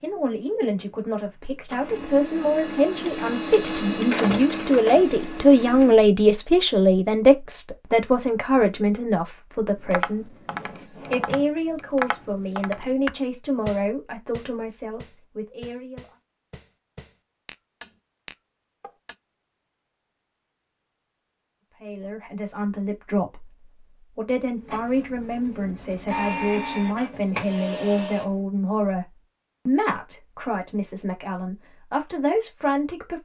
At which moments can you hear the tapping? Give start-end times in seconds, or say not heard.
9.8-19.1.